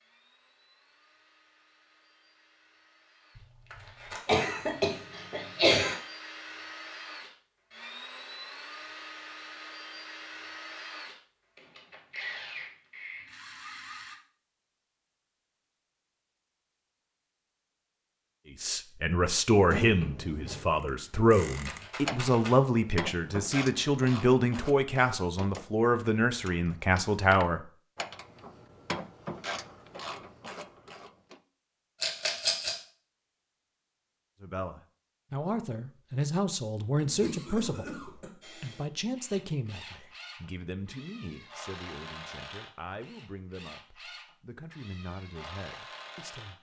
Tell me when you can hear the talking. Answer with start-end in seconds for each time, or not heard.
18.5-27.6, 34.4-46.5.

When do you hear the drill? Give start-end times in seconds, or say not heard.
0.0-14.2, 38.4-46.5.